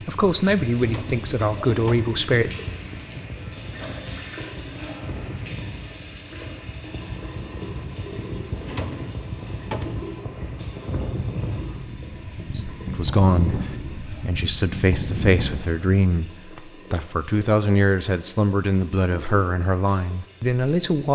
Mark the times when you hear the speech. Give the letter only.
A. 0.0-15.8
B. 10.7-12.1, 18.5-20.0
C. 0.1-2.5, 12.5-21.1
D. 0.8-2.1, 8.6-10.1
C.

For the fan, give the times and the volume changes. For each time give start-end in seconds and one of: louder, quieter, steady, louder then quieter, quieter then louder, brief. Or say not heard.
0.0-15.8 louder.